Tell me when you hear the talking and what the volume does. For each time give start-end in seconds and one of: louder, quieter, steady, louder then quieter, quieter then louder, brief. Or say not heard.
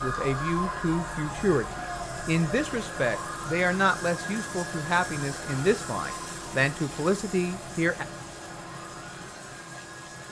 0.0-8.1 steady.